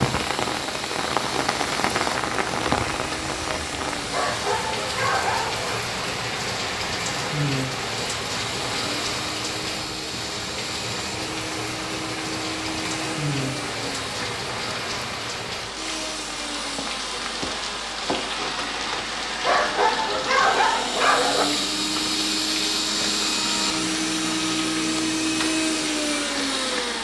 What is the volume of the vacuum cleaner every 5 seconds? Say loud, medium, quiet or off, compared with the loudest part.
medium, medium, medium, medium, loud, loud.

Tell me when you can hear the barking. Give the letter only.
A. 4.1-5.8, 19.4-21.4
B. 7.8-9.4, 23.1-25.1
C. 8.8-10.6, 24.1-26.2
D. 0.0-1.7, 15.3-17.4
A.